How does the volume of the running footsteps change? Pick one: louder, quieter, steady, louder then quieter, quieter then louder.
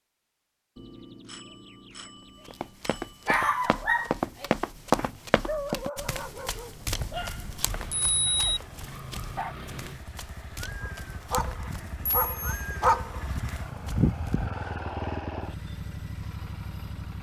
quieter.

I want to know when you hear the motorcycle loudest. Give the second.
15 s.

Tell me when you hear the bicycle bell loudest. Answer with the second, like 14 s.
8 s.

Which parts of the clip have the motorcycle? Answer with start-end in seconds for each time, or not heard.
7.5-17.1.